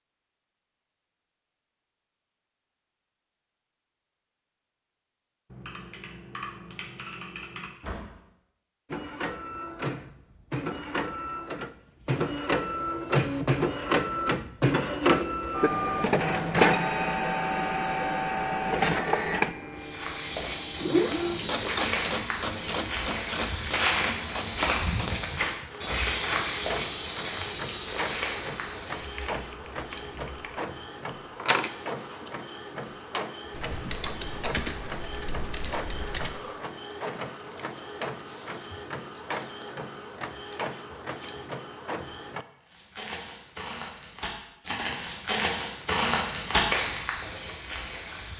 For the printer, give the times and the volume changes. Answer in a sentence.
The printer can be heard from 8.9 to 42.5 s, getting quieter.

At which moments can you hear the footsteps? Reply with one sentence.
You can hear the footsteps from 19.8 to 29.4 s and from 42.6 to 48.3 s.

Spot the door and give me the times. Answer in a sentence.
The door can be heard from 7.7 to 8.1 s.